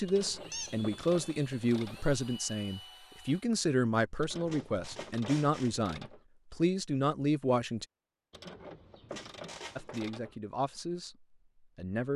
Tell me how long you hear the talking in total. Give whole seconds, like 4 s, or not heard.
10 s.